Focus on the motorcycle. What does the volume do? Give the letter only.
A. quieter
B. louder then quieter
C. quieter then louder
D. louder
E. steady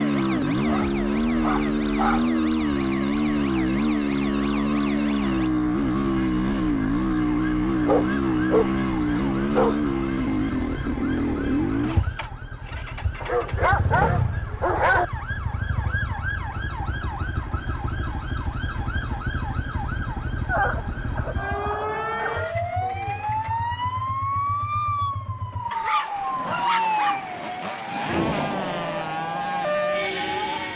A.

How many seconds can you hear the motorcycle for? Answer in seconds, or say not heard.
31 s.